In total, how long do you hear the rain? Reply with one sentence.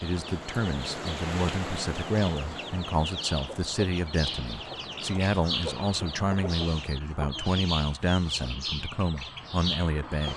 The rain can be heard for 7 seconds in total.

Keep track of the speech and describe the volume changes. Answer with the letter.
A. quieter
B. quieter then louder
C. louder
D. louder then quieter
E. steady
E.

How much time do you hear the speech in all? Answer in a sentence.
The speech can be heard for 10 seconds in total.